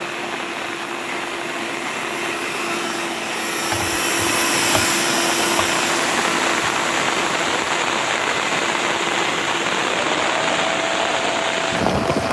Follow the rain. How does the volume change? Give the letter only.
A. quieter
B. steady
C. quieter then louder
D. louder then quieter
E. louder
E.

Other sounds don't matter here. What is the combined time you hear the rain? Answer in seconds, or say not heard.
12 s.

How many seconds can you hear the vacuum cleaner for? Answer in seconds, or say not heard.
12 s.